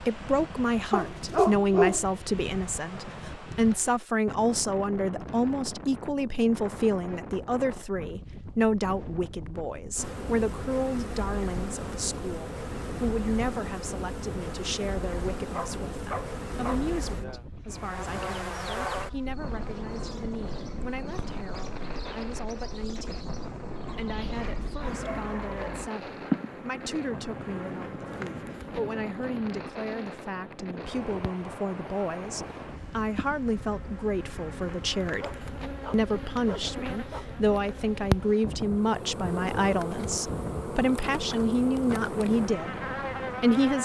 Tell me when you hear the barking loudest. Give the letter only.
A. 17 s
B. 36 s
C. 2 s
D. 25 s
C.